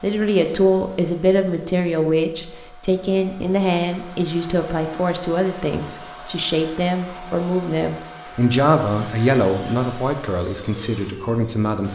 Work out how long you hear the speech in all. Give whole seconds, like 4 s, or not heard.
12 s.